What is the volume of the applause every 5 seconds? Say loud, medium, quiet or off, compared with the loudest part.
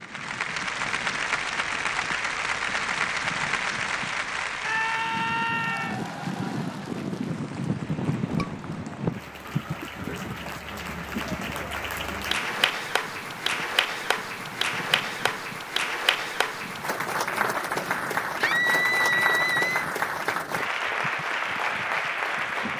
loud, quiet, loud, loud, loud.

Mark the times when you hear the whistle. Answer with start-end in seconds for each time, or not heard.
not heard.